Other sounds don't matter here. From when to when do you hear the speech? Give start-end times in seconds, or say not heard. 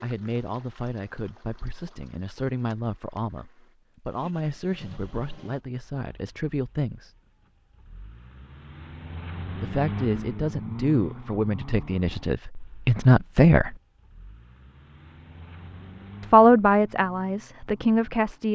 0.0-7.1, 9.5-13.8, 16.3-18.5.